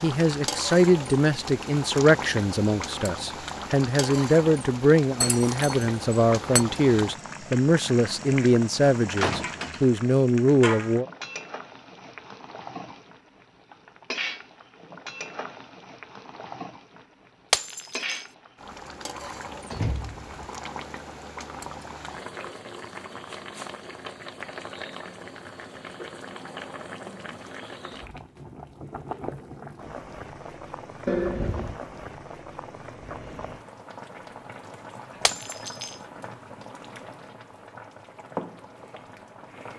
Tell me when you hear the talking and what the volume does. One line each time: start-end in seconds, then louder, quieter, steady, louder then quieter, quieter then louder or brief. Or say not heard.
0.0-11.1 steady.